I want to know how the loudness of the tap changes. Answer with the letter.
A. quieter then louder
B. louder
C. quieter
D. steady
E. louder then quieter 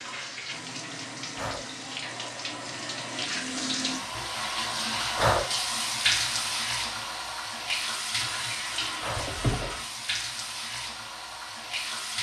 E.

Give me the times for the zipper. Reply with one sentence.
You can hear the zipper from 9.2 to 9.8 s.